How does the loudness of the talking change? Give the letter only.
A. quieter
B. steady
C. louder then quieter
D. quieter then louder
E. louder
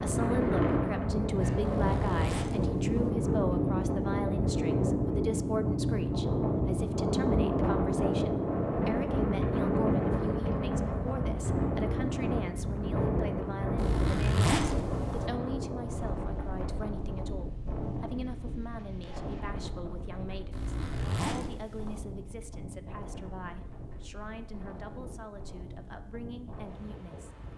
A.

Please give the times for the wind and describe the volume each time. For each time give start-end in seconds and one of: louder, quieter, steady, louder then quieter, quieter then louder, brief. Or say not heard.
0.0-27.5 quieter.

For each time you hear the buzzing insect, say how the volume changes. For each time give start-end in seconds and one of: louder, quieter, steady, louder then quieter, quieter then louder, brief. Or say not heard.
not heard.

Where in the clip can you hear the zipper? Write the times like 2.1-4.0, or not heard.
1.6-3.1, 13.8-15.3, 20.5-22.0.